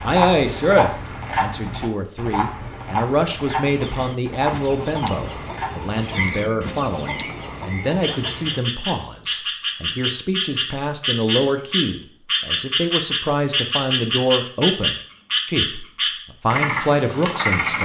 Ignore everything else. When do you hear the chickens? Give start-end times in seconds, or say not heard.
3.6-9.2.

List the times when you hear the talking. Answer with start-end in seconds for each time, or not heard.
0.0-17.8.